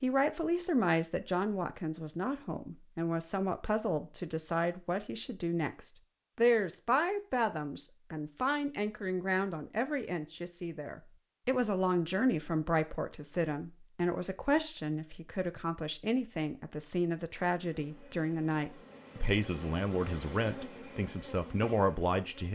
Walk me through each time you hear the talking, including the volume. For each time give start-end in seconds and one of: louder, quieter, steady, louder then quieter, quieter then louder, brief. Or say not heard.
0.0-22.5 steady.